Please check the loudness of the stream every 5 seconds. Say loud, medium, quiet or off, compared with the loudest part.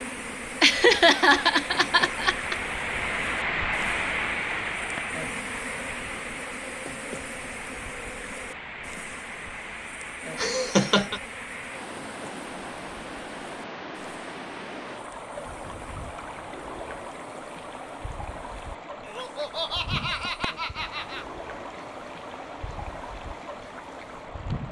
loud, medium, medium, medium, medium.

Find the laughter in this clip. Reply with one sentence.
You can hear the laughter from 0.6 to 2.5 s, from 10.3 to 11.2 s and from 19.0 to 21.2 s.